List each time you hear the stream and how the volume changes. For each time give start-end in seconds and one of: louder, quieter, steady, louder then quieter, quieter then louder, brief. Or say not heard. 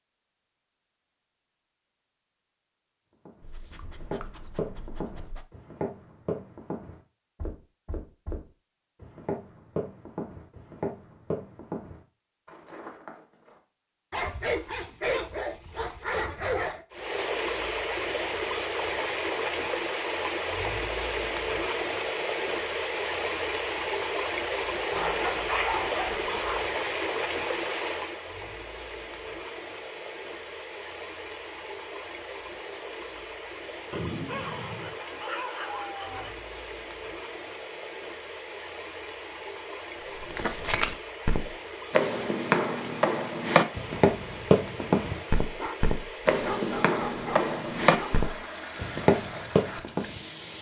16.9-50.5 quieter.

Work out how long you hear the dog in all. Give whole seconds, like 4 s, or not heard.
12 s.